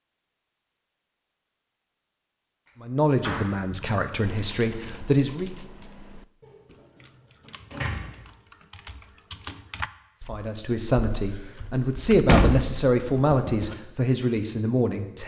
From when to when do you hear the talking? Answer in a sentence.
The talking can be heard from 2.8 to 5.5 s and from 10.2 to 15.2 s.